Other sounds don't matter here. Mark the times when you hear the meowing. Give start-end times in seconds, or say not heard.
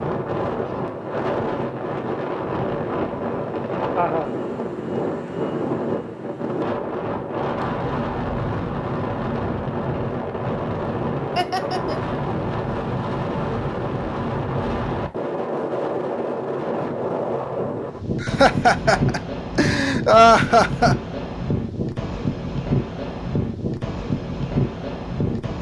not heard.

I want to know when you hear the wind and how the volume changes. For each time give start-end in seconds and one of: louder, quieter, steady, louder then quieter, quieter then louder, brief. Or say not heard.
0.0-25.5 steady.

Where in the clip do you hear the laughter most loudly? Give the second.
20 s.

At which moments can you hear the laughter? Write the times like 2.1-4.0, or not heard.
4.0-4.4, 11.3-12.2, 18.2-20.9.